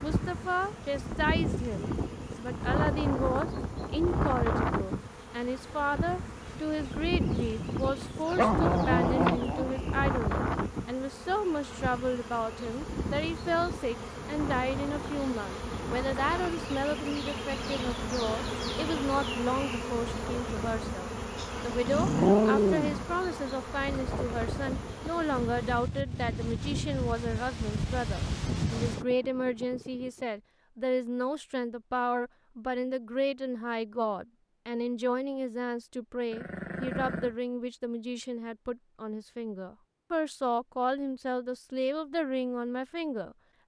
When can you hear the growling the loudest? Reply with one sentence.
The volume of the growling peaks at 22 seconds.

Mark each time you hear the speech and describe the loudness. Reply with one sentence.
The speech can be heard from 0.0 to 43.4 s, at a steady volume.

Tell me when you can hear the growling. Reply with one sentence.
The growling can be heard from 8.0 to 9.8 s, from 21.4 to 23.1 s and from 36.3 to 37.4 s.